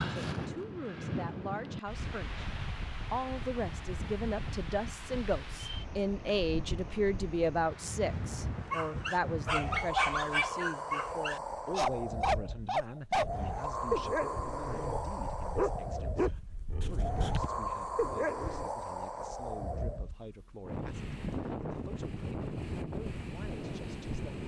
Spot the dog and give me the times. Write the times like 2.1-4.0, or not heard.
8.7-18.7.